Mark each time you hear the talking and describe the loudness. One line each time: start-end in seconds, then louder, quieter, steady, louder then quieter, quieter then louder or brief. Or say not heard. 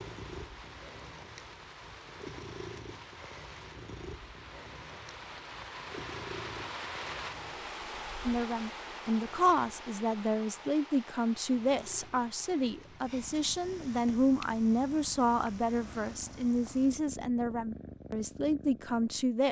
8.2-19.4 steady.